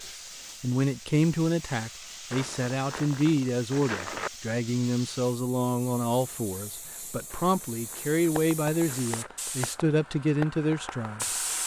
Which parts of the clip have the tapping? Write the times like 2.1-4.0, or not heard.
8.3-11.6.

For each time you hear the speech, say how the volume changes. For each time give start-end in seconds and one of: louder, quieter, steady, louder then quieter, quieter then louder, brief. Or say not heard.
0.1-11.6 steady.